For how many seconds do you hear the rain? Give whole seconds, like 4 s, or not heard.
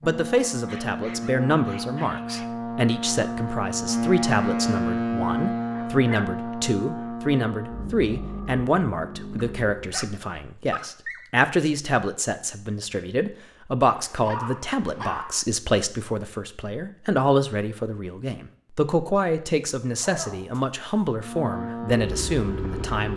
not heard.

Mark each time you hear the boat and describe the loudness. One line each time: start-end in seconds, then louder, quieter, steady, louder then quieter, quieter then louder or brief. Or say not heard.
0.0-10.0 louder then quieter
21.1-23.1 brief.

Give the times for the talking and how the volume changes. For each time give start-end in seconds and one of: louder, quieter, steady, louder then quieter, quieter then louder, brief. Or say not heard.
0.0-23.1 steady.